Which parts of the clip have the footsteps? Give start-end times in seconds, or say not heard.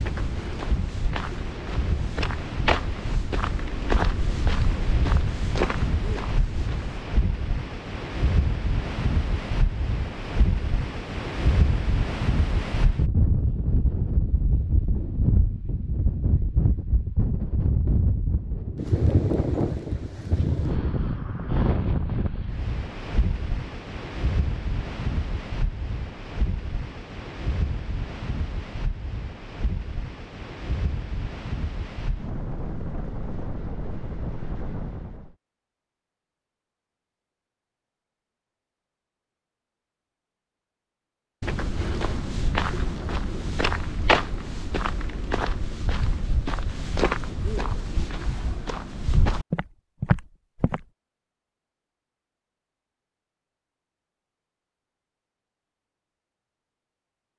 0.0-7.0, 41.4-50.9.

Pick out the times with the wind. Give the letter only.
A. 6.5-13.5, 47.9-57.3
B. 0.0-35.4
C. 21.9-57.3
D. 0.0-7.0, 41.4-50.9
B.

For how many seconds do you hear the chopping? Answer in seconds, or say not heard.
not heard.